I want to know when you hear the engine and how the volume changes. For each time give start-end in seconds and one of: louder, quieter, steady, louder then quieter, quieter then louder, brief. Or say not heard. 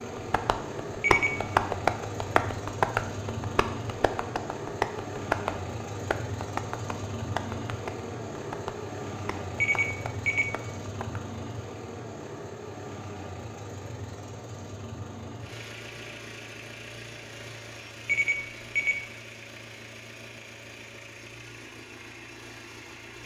0.0-23.2 quieter.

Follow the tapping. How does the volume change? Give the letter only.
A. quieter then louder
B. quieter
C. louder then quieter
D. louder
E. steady
B.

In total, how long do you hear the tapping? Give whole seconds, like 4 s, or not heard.
11 s.